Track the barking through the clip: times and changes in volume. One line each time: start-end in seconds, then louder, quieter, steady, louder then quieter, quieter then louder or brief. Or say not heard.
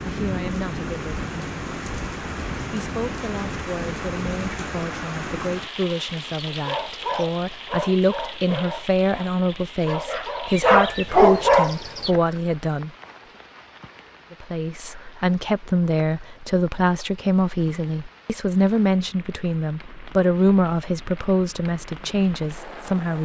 6.5-12.1 quieter then louder.